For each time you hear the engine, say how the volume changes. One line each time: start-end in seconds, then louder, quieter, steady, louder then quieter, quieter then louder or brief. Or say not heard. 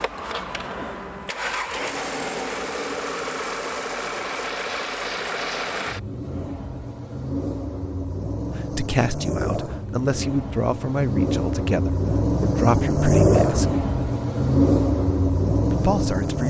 0.0-16.4 louder.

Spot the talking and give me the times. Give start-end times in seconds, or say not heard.
8.5-13.7, 15.7-16.4.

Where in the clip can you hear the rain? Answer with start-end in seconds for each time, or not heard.
not heard.